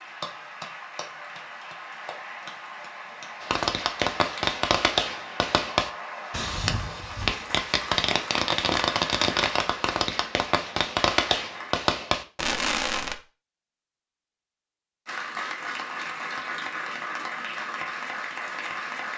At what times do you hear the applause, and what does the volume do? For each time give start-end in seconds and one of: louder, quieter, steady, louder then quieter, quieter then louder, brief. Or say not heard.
0.0-11.8 steady
15.1-19.1 steady.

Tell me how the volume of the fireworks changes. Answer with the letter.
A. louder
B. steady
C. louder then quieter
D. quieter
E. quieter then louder
B.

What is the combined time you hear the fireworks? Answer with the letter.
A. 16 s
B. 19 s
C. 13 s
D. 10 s
D.